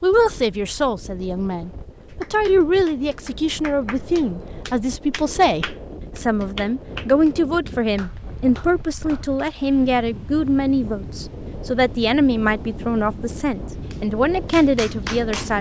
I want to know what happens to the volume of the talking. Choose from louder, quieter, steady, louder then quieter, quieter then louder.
steady.